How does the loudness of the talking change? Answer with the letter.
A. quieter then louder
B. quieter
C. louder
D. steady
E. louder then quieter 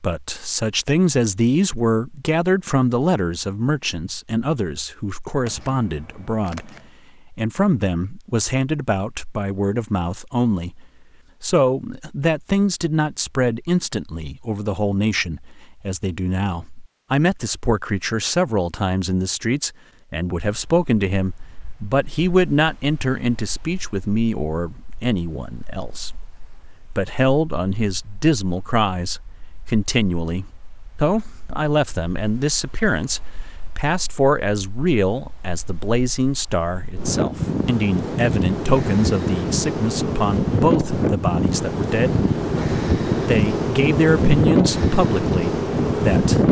D.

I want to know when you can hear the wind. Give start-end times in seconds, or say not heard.
20.4-46.4.